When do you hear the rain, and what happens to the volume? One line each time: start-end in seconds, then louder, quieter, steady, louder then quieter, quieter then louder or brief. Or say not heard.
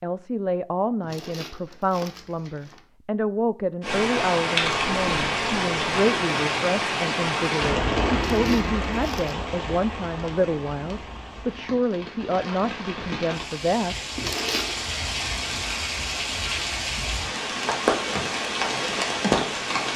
3.8-19.9 quieter then louder.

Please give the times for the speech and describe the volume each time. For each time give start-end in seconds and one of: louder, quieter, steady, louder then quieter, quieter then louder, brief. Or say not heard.
0.0-13.9 steady.